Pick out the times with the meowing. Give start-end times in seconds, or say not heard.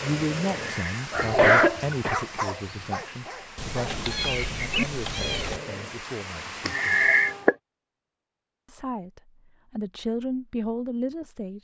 3.5-5.6.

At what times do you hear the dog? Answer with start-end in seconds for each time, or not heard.
0.0-6.0.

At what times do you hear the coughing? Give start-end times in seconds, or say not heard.
0.6-2.2, 6.7-7.5.